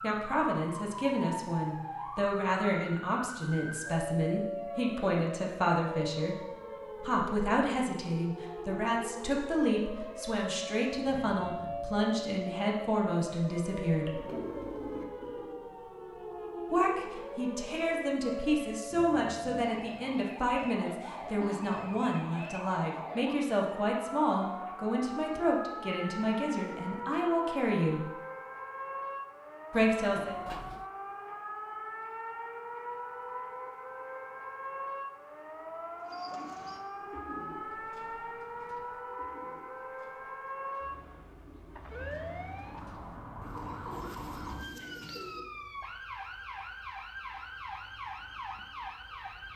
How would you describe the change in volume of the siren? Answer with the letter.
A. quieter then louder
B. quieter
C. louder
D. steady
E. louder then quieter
D.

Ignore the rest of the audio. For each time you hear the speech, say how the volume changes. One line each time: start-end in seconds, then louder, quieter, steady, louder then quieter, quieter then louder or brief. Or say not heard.
0.0-14.2 steady
16.7-28.1 steady
29.7-30.4 brief.